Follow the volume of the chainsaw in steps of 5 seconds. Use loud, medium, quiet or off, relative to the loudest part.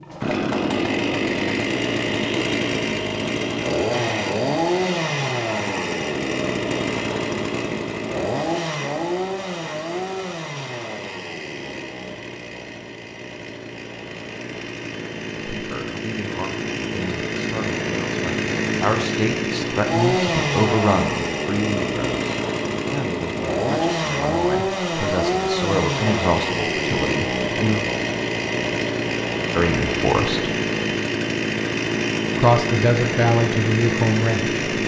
loud, loud, medium, loud, loud, loud, loud.